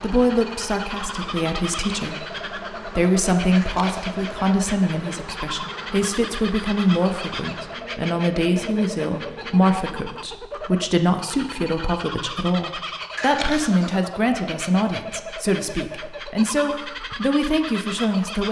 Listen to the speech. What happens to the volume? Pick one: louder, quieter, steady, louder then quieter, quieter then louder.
steady.